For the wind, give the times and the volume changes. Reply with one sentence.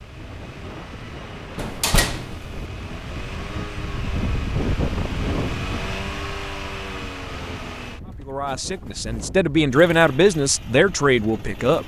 You can hear the wind from 0.0 to 11.8 s, getting louder then quieter.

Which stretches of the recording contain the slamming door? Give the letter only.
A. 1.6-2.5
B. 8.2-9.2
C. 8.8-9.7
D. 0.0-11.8
A.